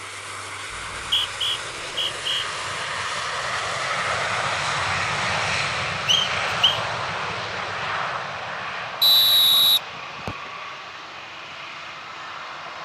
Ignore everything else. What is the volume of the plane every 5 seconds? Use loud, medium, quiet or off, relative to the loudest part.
loud, loud, medium.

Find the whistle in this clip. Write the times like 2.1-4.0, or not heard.
0.7-2.5, 6.0-6.8, 9.0-10.3.